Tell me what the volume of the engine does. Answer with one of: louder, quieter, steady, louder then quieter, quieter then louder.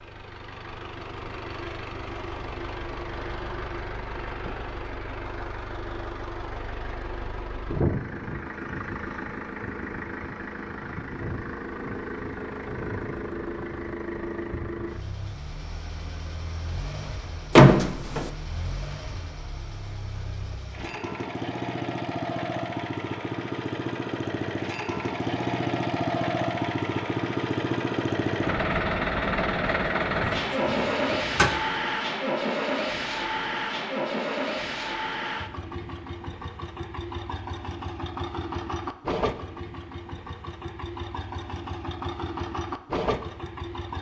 louder then quieter.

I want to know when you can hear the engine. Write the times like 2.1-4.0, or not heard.
0.0-43.9.